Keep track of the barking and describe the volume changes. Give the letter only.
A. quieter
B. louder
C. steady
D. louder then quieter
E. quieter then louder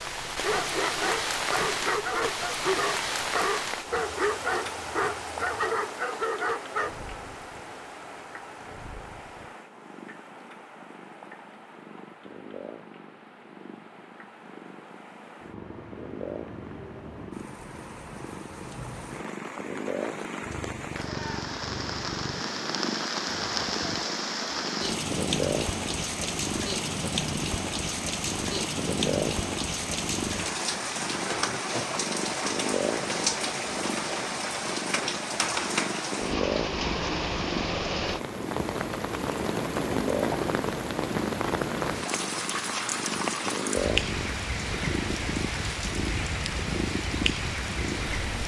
C.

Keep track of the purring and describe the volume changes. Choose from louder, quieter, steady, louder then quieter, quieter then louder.
louder.